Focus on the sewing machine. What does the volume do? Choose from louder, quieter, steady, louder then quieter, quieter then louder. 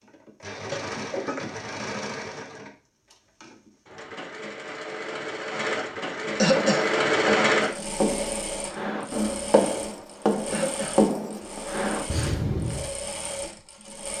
louder then quieter.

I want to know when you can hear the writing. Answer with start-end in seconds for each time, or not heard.
6.5-12.9.